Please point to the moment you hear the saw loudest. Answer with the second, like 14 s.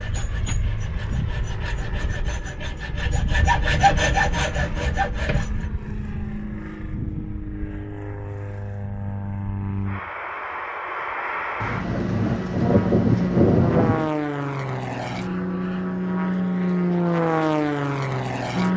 4 s.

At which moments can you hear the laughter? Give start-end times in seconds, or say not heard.
not heard.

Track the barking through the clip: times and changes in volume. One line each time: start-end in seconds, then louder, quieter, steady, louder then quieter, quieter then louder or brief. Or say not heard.
not heard.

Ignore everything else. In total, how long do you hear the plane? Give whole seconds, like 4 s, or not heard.
19 s.